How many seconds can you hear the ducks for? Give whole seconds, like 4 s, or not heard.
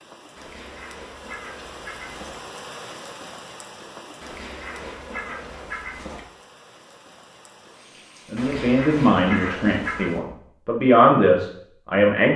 6 s.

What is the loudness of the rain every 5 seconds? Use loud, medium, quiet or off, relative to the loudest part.
loud, medium, off.